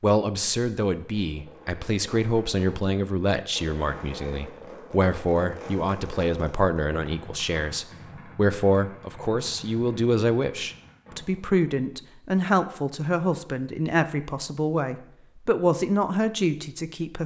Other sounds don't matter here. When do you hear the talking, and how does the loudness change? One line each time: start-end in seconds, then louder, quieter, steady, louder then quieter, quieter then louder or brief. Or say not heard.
0.0-17.2 steady.